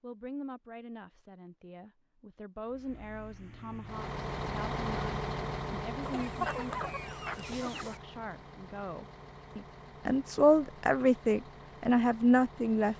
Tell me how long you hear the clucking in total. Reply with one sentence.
You can hear the clucking for 2 seconds altogether.